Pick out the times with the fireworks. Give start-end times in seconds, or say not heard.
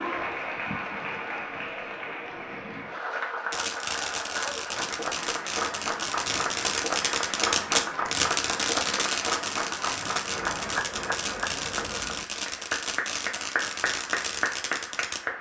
3.5-15.2.